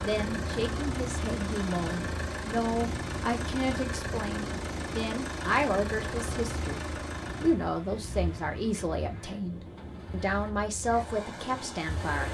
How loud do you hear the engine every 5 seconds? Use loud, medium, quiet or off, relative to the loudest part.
loud, loud, medium.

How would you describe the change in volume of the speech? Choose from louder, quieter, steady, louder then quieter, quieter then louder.
steady.